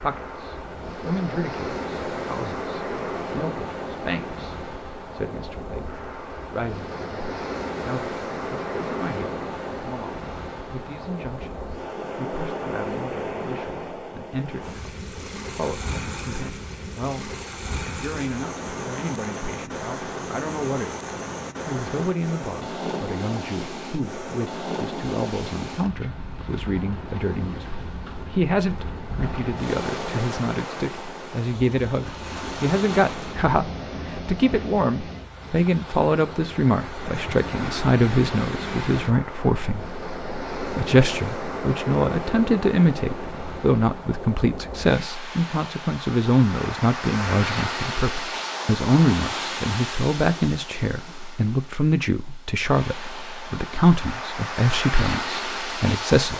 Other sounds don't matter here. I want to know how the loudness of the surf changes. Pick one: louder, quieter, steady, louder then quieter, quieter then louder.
steady.